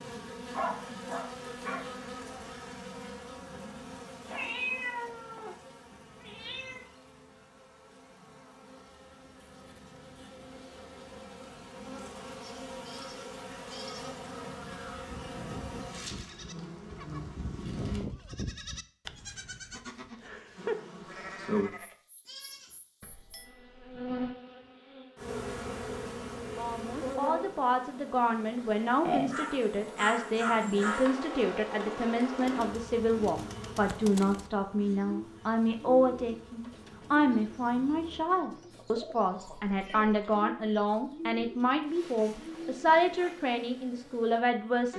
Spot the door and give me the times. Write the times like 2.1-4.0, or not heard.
not heard.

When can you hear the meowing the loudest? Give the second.
5 s.